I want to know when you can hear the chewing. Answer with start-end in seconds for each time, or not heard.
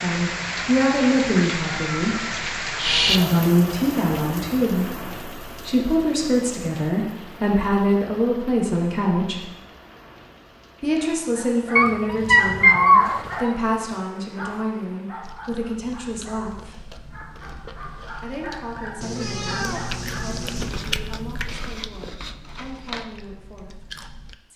15.2-24.4.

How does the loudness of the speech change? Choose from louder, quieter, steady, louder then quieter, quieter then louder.
quieter.